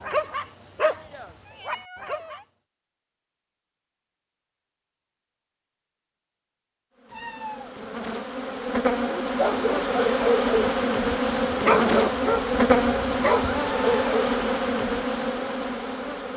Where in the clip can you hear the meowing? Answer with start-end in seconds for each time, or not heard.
1.4-2.5, 7.1-7.8, 12.9-14.2.